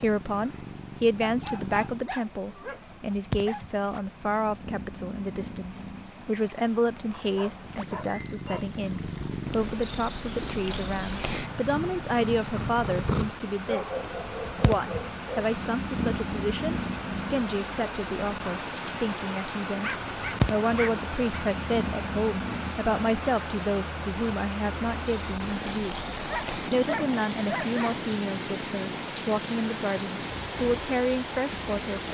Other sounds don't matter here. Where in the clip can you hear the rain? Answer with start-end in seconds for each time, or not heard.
0.0-32.1.